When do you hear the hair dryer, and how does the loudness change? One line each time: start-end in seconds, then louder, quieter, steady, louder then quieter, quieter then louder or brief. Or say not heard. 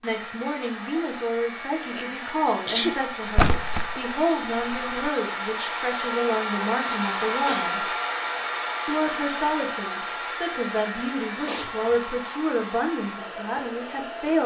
0.0-14.4 louder then quieter.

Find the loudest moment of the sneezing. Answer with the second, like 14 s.
3 s.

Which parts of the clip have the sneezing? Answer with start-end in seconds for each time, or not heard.
1.8-3.0, 6.8-7.8, 11.4-12.0.